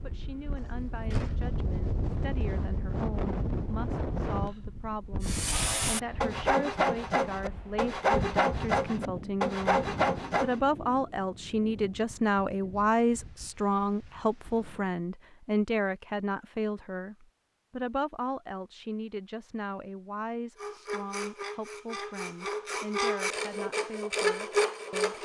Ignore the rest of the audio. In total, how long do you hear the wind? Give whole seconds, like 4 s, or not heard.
15 s.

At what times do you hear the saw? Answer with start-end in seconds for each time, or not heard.
5.2-10.6, 20.6-25.2.